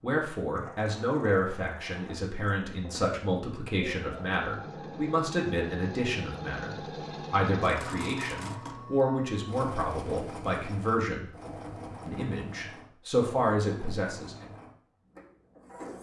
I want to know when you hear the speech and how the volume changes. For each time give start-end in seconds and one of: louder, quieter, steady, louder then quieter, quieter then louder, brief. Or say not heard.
0.0-11.3 steady
12.1-14.4 brief.